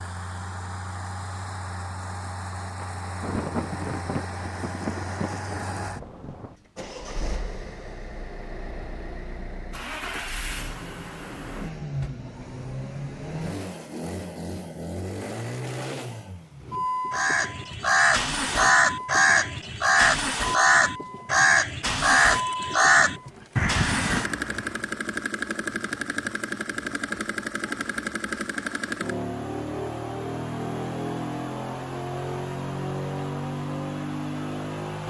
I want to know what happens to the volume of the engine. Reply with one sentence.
The loudness of the engine goes up.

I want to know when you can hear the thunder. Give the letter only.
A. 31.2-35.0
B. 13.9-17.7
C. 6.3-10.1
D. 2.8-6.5
D.